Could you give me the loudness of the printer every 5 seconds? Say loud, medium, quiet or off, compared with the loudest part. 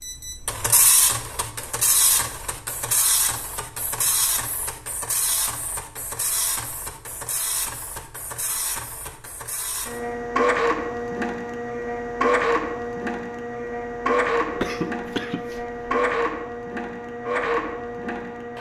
loud, medium, loud, loud.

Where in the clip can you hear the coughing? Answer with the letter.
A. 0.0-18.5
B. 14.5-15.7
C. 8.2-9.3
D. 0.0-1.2
B.